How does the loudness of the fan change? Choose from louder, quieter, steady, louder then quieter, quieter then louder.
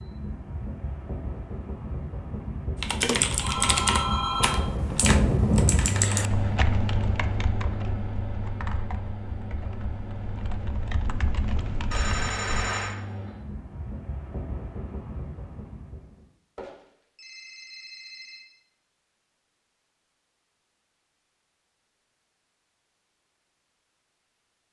louder then quieter.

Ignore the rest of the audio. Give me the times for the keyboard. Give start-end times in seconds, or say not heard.
2.8-12.7.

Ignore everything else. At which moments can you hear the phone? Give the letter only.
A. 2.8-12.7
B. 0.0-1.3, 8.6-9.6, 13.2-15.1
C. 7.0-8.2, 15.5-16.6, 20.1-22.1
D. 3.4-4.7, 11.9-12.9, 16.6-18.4
D.